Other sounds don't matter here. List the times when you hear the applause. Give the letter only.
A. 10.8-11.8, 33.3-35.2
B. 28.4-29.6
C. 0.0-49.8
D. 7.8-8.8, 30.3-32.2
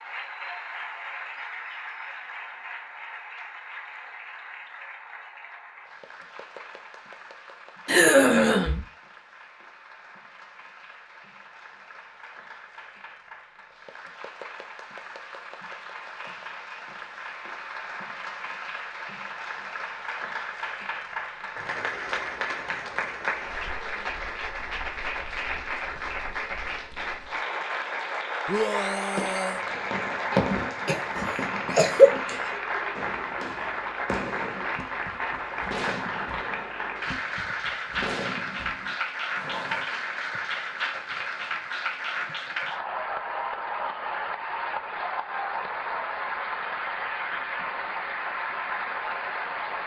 C.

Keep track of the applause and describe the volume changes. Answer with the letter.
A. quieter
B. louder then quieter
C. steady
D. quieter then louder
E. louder
E.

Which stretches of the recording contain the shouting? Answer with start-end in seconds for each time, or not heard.
28.4-29.6.